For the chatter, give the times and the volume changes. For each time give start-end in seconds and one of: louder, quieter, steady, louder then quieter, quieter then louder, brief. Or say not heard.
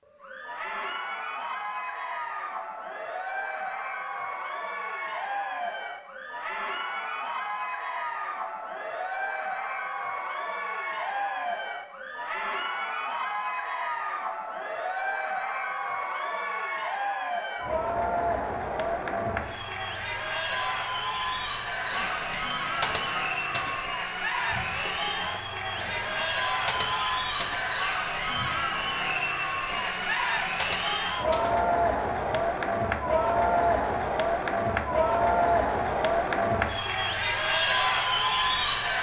0.1-38.9 louder.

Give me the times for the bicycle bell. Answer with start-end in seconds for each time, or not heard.
not heard.